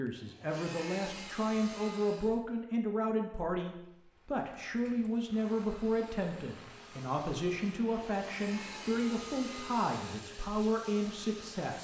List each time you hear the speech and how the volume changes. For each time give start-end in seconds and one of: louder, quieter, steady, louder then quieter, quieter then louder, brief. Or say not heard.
0.0-11.7 steady.